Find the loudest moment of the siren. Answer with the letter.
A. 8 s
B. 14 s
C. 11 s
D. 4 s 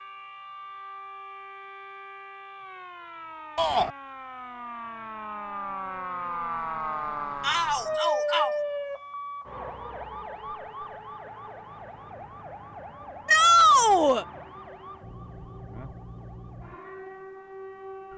A.